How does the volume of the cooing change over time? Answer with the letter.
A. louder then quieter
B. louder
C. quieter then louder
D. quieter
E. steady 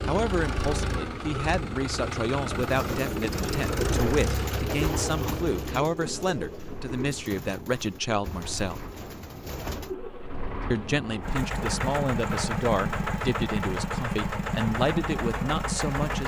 D.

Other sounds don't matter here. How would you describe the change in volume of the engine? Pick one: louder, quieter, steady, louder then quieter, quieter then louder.
quieter then louder.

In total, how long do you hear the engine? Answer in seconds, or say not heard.
16 s.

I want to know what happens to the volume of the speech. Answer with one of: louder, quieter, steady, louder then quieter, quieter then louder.
steady.